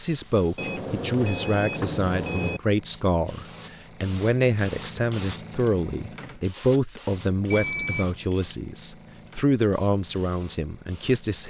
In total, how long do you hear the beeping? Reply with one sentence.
The beeping can be heard for 3 seconds in total.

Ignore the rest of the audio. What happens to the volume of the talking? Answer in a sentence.
The volume of the talking stays about the same.